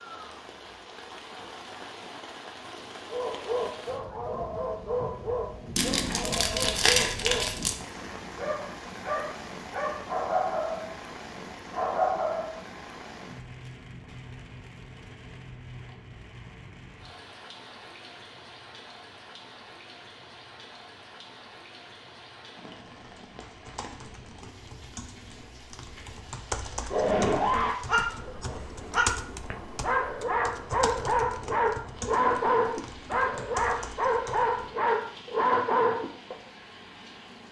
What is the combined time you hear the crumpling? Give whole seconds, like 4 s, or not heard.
2 s.